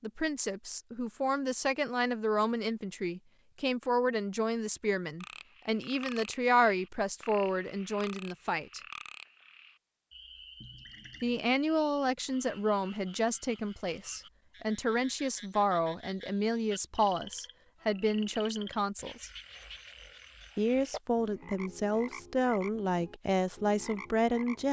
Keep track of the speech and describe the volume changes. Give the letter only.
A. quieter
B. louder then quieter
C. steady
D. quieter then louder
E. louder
C.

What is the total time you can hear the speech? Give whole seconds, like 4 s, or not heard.
21 s.